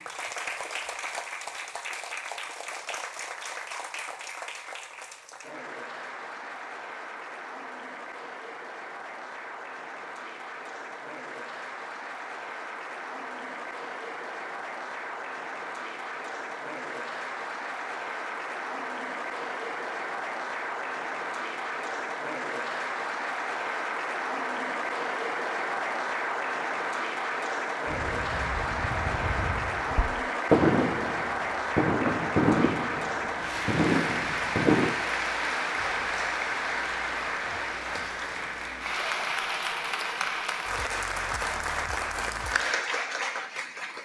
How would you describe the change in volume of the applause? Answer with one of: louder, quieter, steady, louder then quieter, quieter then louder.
louder.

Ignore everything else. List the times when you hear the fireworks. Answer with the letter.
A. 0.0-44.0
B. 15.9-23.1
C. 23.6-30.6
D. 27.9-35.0
D.